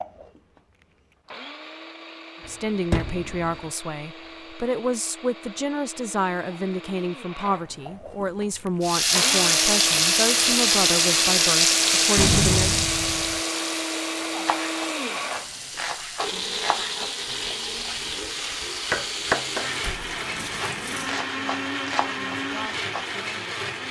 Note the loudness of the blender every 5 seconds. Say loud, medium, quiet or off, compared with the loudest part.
quiet, medium, loud, loud, loud.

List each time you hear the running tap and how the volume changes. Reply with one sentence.
The running tap can be heard from 8.8 to 21.2 s, getting quieter.